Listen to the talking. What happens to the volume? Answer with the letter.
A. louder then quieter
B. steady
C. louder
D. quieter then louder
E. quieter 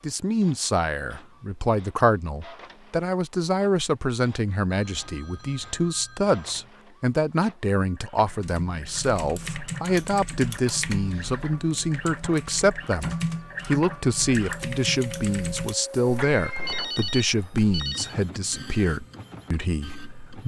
B.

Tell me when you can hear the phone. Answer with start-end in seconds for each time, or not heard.
4.7-6.7, 16.6-18.1.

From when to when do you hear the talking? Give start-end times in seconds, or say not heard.
0.0-20.4.